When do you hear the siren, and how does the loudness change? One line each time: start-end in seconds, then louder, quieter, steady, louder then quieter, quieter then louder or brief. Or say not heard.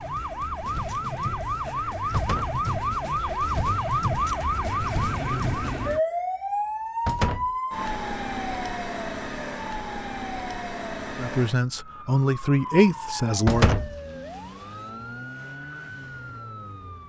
0.0-17.0 quieter.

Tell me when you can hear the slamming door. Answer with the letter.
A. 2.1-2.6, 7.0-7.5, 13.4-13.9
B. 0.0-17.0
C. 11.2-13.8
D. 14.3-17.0
A.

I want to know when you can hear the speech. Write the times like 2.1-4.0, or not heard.
11.2-13.8.